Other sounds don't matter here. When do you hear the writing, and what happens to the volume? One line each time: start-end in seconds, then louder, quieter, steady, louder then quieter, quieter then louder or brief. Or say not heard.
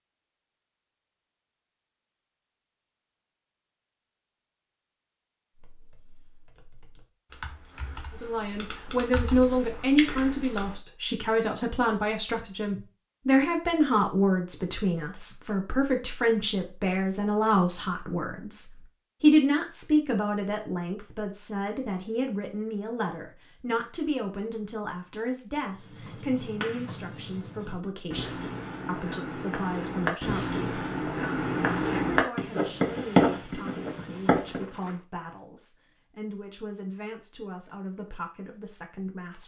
25.7-34.6 louder.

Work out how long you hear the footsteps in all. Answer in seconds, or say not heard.
not heard.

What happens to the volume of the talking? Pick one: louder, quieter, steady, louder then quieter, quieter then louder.
quieter.